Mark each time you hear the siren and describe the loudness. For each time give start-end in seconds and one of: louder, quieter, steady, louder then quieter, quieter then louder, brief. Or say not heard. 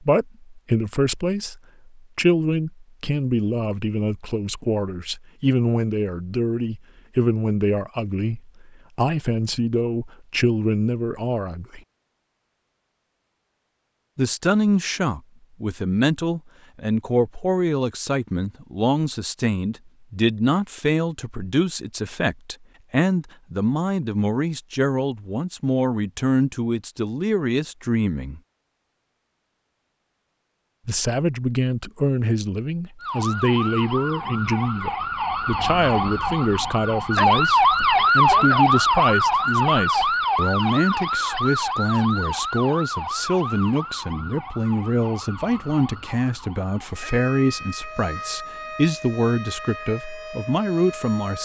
33.0-51.4 louder then quieter.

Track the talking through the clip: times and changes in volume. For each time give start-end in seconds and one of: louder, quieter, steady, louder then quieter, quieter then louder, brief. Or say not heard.
0.0-11.8 steady
14.2-28.4 steady
30.9-51.4 steady.